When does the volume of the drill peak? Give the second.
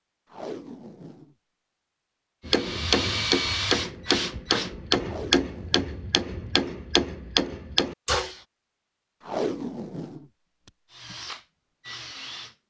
3 s.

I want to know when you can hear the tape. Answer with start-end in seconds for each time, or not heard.
0.3-1.4, 5.0-5.9, 9.2-11.2.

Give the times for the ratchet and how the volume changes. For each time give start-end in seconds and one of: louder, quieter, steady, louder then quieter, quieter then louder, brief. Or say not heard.
not heard.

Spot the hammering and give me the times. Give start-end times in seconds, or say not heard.
2.5-8.3.